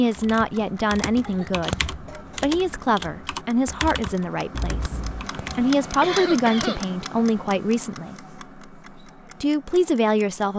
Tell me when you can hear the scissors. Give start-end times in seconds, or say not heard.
4.5-5.2.